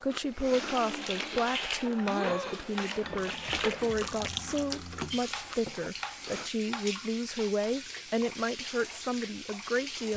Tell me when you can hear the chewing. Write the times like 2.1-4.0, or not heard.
0.1-6.5.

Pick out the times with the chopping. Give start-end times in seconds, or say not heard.
1.4-3.0, 5.3-7.5.